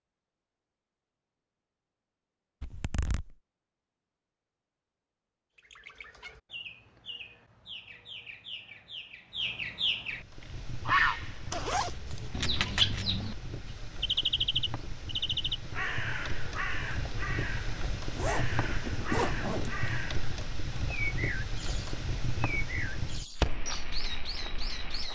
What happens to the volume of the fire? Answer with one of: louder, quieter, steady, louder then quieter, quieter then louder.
louder.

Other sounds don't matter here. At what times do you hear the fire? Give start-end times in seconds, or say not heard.
10.1-25.1.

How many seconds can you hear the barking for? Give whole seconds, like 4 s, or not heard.
not heard.